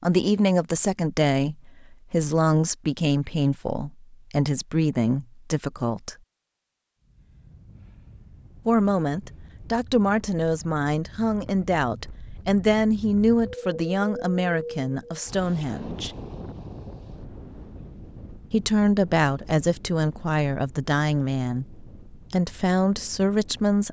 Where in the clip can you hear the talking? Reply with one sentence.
You can hear the talking from 0.0 to 6.2 s, from 8.7 to 16.1 s and from 18.5 to 23.8 s.